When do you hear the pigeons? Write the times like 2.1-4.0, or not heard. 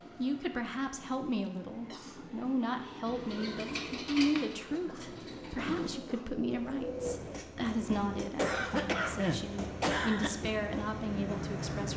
3.0-7.2.